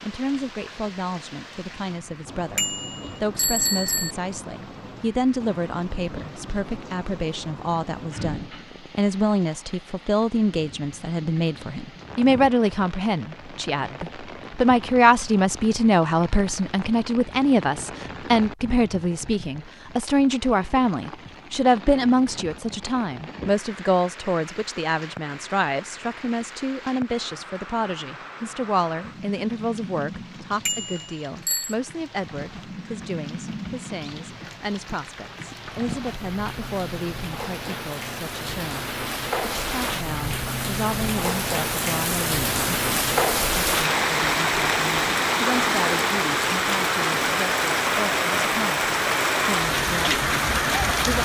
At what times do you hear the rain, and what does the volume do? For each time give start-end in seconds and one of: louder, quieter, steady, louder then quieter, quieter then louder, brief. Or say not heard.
0.0-51.2 louder.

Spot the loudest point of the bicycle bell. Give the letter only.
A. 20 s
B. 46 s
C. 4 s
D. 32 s
C.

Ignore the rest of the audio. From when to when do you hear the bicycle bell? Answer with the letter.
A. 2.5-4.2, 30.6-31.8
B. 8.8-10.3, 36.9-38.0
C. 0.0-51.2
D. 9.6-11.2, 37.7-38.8
A.